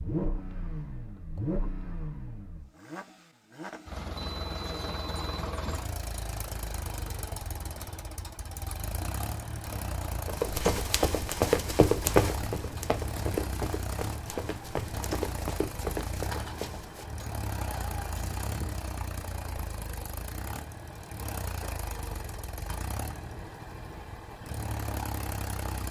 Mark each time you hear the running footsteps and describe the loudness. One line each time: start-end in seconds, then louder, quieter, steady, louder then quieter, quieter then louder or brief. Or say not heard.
10.2-17.1 quieter.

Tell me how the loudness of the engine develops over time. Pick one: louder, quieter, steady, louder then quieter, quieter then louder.
steady.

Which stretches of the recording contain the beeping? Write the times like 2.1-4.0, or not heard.
4.2-5.5.